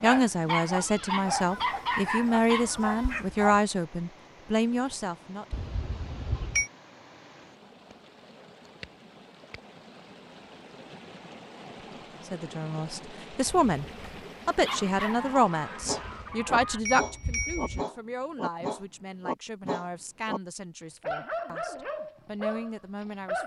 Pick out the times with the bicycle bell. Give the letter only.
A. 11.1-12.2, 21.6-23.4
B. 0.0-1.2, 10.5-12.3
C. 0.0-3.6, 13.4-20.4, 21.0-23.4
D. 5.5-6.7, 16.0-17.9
D.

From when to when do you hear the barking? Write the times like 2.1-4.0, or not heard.
0.0-3.6, 13.4-20.4, 21.0-23.4.